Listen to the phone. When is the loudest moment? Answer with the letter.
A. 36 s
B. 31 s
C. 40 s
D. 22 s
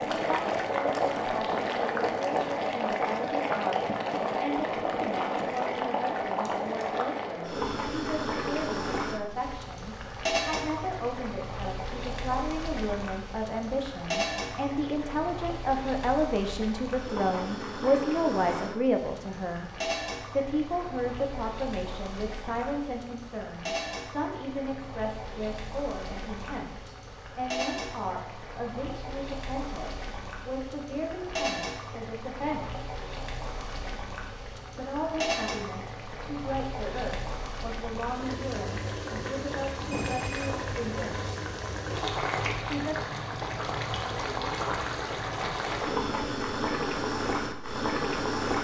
C.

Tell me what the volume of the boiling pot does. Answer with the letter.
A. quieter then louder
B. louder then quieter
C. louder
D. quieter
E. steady
A.